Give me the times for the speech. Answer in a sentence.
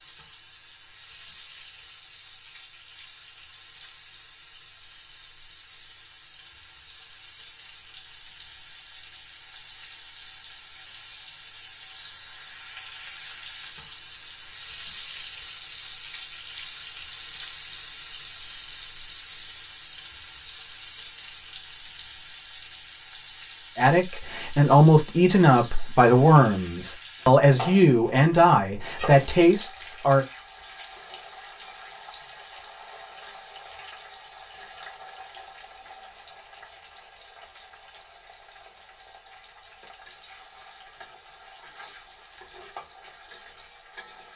The speech can be heard from 23.8 to 30.2 s.